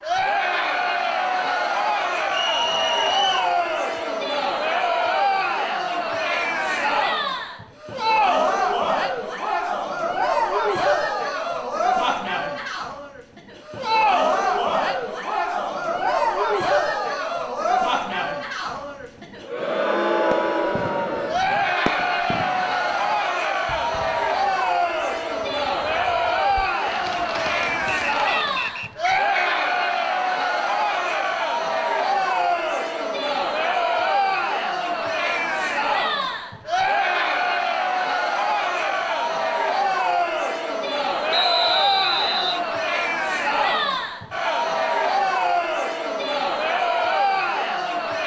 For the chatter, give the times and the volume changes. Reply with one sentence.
You can hear the chatter from 0.0 to 48.2 s, at a steady volume.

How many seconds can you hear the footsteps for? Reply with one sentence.
You can't hear the footsteps here.